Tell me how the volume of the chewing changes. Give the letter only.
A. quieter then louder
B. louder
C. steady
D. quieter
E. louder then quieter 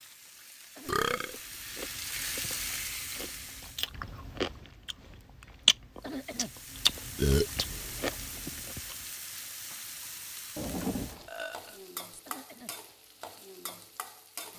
E.